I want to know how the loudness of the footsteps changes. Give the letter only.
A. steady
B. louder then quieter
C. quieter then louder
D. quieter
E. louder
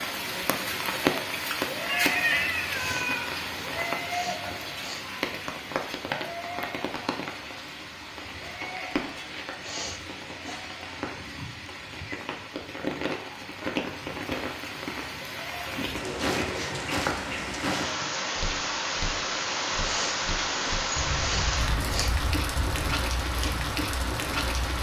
D.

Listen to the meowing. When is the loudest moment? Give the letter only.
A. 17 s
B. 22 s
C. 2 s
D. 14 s
C.